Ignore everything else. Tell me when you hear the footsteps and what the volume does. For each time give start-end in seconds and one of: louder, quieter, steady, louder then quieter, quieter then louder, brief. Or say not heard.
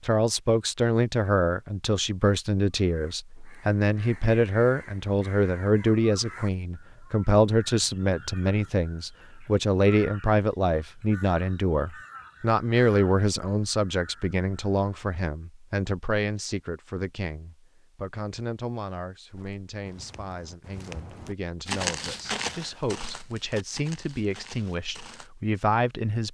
19.3-25.3 louder then quieter.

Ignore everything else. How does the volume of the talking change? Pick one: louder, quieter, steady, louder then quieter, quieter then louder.
quieter.